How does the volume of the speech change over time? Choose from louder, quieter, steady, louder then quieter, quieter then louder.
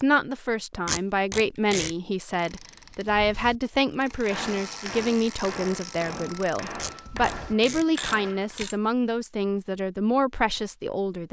steady.